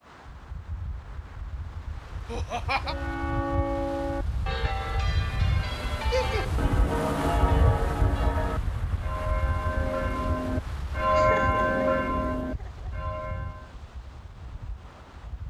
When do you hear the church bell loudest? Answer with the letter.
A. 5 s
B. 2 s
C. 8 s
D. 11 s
D.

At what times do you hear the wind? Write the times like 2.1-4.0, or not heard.
0.0-15.4.